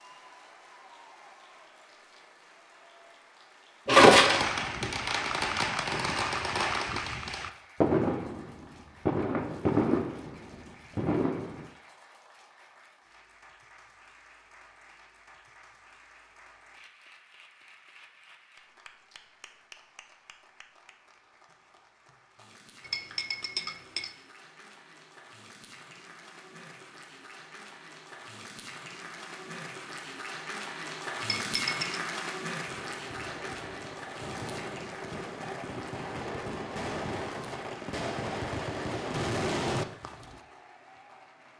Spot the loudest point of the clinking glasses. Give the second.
4 s.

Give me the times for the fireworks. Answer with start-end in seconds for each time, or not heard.
4.1-11.7, 32.6-40.4.